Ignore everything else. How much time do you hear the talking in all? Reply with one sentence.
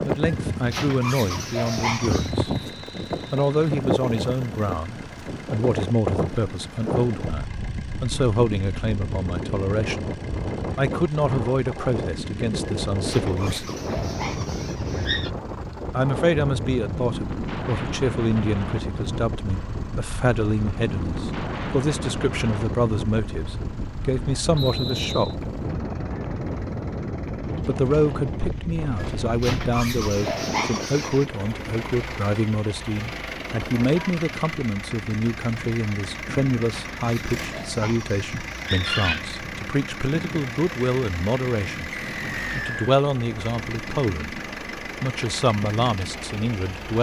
The talking can be heard for 42 seconds in total.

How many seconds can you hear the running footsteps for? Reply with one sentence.
The running footsteps can't be heard in this clip.